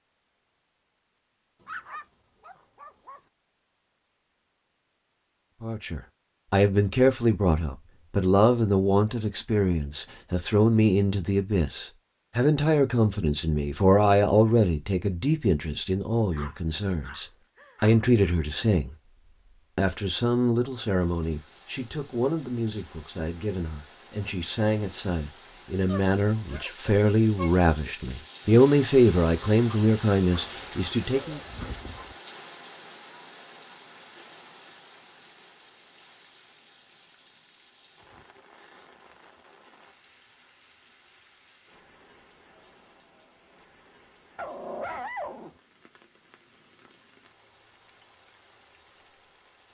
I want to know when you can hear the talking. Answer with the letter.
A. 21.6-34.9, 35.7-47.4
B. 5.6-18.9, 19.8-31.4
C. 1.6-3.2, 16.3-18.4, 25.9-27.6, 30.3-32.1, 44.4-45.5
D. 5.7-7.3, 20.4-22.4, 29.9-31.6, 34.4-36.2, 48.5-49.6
B.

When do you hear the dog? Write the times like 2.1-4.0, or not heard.
1.6-3.2, 16.3-18.4, 25.9-27.6, 30.3-32.1, 44.4-45.5.